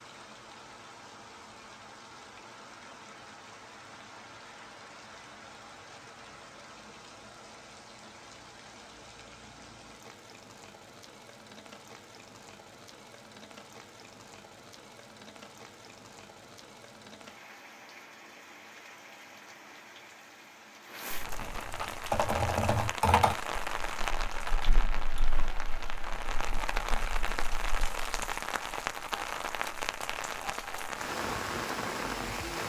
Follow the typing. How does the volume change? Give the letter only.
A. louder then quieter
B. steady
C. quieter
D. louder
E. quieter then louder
C.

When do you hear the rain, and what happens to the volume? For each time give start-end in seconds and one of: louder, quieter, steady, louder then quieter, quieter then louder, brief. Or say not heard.
0.0-32.6 louder.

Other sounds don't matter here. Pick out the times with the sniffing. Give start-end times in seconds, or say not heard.
not heard.